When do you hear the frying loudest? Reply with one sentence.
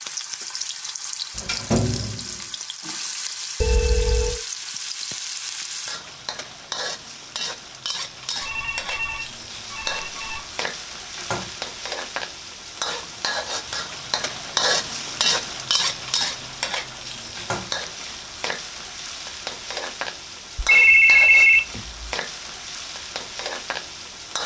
The loudest moment of the frying is at 15 seconds.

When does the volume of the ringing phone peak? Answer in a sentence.
The loudest moment of the ringing phone is at 21 seconds.